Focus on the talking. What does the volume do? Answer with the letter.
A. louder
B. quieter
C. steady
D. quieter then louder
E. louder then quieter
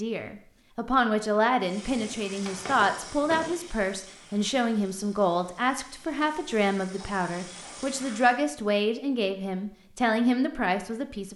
C.